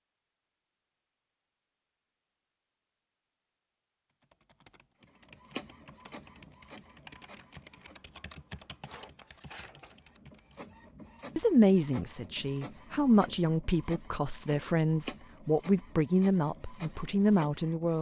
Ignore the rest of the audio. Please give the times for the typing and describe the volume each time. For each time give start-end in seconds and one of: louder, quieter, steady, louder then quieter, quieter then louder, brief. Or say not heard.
4.1-10.7 louder then quieter.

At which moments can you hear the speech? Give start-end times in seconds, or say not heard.
11.3-17.9.